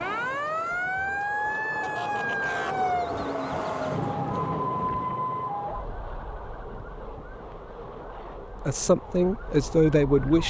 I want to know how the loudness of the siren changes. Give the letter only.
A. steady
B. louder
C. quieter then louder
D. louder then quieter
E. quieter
E.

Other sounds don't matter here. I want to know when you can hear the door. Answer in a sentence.
You can't hear the door here.